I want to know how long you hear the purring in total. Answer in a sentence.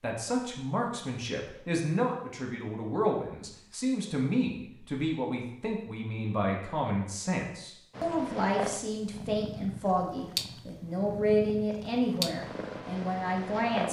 You can hear the purring for 6 seconds altogether.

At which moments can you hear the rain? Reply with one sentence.
You can't hear the rain here.